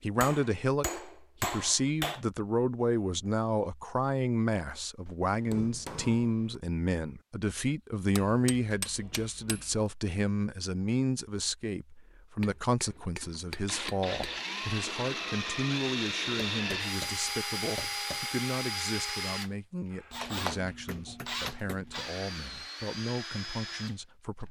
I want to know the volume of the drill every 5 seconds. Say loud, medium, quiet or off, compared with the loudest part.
off, off, loud, loud, medium.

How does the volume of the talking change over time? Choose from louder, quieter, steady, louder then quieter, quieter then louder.
quieter.